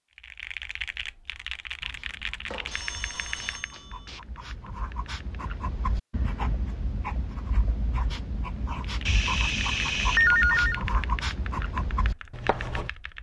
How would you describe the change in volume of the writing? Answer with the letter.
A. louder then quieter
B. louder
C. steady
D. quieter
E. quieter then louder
B.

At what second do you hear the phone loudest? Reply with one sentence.
The volume of the phone peaks at 10 seconds.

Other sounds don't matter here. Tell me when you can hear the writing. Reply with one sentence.
You can hear the writing from 1.8 to 12.9 s.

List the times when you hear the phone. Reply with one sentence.
You can hear the phone from 2.5 to 4.2 s and from 9.1 to 10.8 s.